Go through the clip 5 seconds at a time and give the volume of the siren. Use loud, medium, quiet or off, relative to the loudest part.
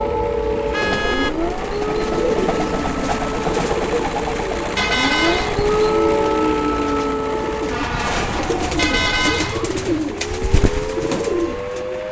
loud, loud, medium.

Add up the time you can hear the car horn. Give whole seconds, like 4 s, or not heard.
3 s.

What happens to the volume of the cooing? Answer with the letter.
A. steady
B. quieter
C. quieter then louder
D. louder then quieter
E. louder
C.